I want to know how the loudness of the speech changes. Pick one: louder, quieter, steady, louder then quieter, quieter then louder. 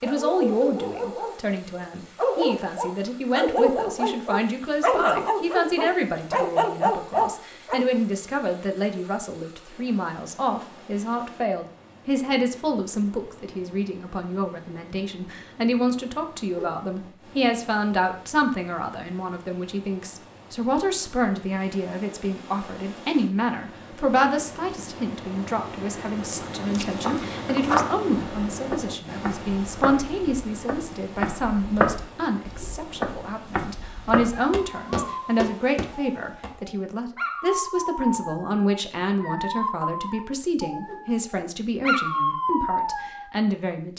steady.